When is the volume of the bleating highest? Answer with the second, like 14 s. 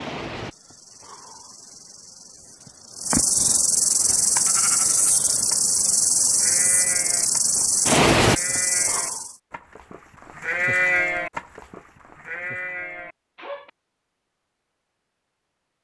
11 s.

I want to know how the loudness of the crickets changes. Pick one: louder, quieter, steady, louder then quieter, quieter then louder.
louder.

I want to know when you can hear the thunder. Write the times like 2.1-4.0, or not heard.
not heard.